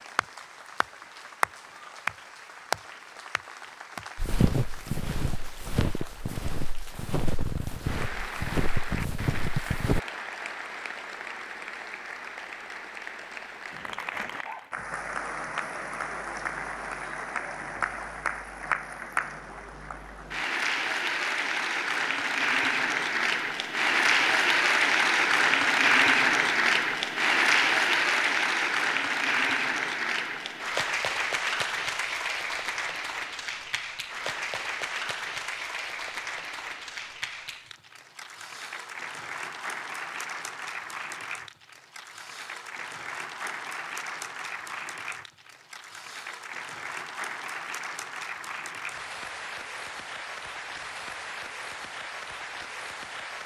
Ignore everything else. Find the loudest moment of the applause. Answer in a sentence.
The volume of the applause peaks at 26 seconds.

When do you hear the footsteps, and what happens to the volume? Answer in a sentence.
The footsteps can be heard from 4.2 to 10.0 s, at a steady volume.